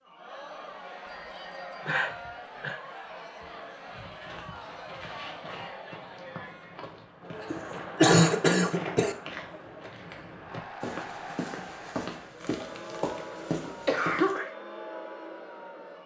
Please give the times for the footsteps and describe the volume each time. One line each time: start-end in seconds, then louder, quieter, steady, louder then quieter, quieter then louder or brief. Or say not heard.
3.9-14.3 louder.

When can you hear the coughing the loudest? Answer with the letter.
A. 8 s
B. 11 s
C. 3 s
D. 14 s
A.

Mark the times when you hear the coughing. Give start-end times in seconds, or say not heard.
1.9-2.8, 7.5-9.2, 12.4-14.5.